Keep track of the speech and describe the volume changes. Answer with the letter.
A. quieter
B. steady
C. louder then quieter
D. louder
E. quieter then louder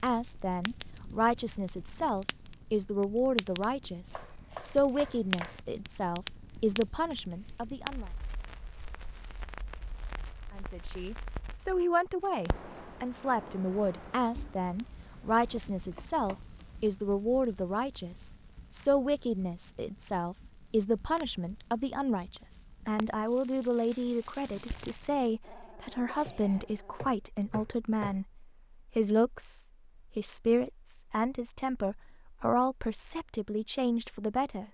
B.